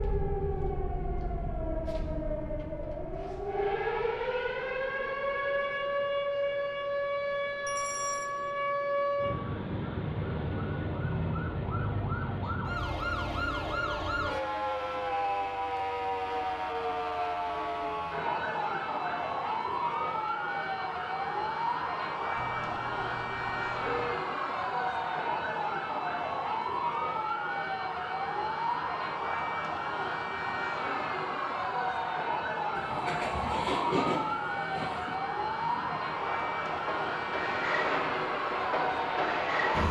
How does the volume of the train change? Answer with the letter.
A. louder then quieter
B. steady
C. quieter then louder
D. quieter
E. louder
C.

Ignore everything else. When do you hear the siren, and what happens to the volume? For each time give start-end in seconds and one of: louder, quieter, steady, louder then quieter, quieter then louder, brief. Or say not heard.
0.0-39.8 steady.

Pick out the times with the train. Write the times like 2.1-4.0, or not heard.
32.8-39.8.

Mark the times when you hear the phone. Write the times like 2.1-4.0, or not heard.
7.7-8.3, 22.4-24.2.